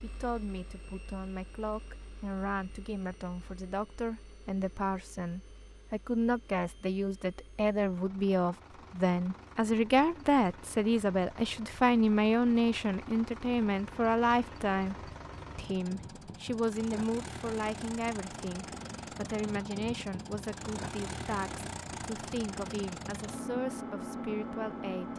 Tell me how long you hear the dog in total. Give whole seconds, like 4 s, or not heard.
not heard.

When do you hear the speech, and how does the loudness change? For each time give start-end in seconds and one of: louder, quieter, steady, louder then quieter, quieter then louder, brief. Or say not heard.
0.0-25.1 louder then quieter.